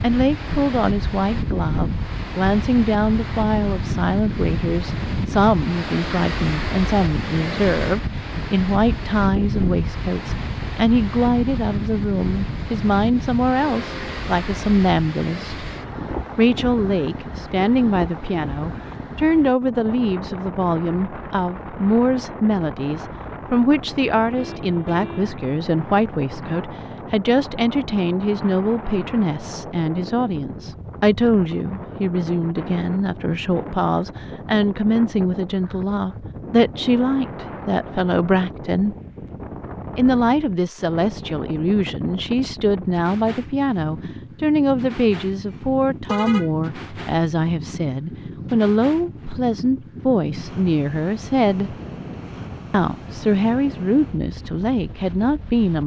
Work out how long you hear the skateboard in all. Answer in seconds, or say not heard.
not heard.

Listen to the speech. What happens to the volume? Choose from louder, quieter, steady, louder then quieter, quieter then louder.
steady.